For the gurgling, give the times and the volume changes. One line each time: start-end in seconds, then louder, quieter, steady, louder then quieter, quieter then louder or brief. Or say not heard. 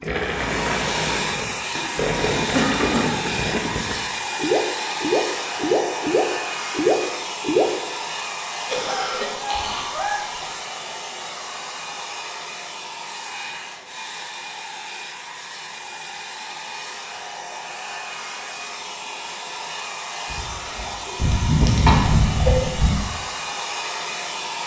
0.0-7.7 louder.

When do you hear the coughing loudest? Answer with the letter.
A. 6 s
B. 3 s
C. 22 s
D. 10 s
C.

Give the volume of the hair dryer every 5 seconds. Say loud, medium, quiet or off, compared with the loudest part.
loud, loud, medium, medium, loud.